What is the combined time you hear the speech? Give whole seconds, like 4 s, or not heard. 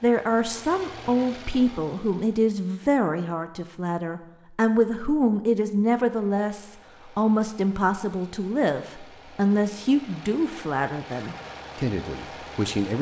13 s.